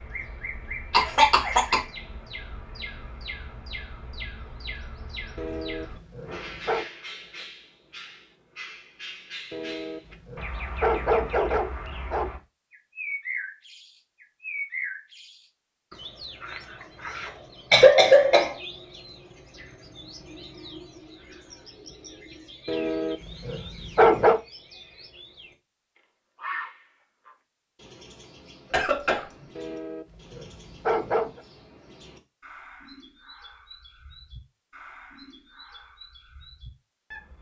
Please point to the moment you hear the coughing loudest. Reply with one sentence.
The volume of the coughing peaks at 18 seconds.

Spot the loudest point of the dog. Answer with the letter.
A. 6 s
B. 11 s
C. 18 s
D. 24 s
D.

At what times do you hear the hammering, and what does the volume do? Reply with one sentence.
The hammering can't be heard in this clip.